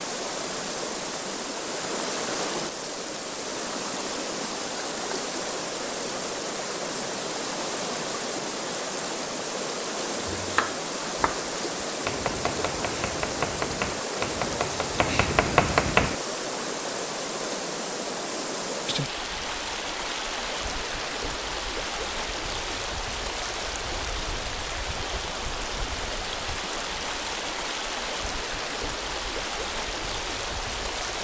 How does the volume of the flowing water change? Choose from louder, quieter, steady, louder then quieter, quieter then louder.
steady.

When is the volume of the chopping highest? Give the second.
16 s.